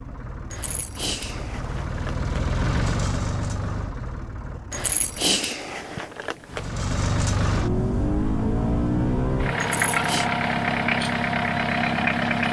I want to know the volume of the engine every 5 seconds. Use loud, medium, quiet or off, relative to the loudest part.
medium, loud, loud.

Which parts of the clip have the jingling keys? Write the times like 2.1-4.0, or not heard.
0.5-2.3, 4.7-6.7, 9.6-10.3.